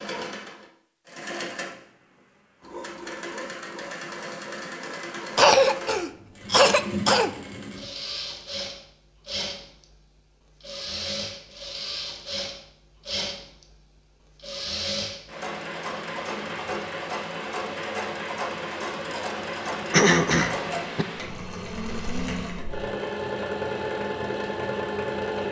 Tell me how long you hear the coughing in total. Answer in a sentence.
The coughing can be heard for 3 seconds in total.